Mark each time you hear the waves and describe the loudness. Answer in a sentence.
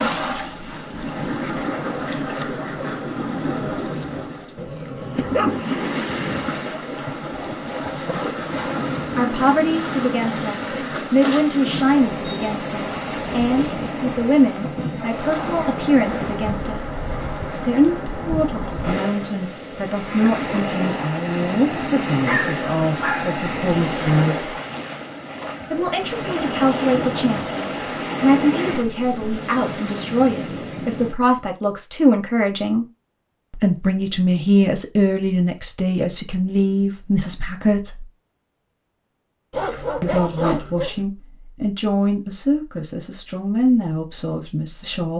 You can hear the waves from 0.0 to 31.1 s, at a steady volume.